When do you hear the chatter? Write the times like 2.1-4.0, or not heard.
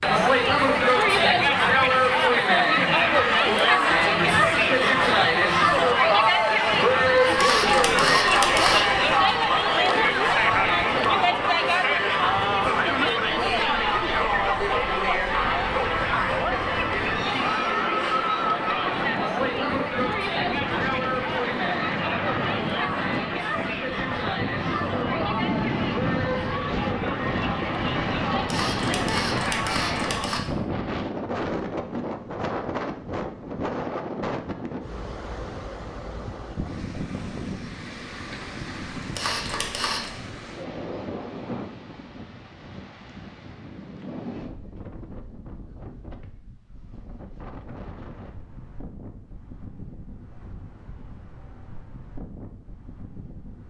0.0-30.4.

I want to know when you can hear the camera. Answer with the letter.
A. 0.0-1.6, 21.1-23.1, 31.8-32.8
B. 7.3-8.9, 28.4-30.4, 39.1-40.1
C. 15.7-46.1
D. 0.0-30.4
B.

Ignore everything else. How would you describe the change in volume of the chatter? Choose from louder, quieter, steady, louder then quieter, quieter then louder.
quieter.